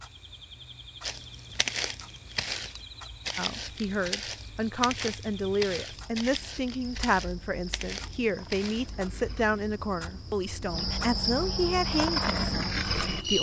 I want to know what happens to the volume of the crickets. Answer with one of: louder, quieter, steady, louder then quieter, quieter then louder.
louder.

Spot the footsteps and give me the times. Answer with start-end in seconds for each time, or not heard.
1.0-8.9.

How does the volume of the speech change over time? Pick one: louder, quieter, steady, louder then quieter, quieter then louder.
steady.